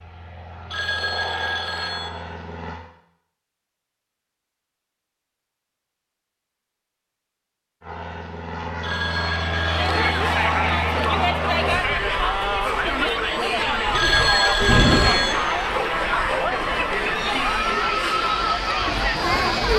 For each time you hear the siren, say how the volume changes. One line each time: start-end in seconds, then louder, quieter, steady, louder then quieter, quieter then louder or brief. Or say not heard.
not heard.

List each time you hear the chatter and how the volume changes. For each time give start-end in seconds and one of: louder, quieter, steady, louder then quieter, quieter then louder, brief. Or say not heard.
9.5-19.7 steady.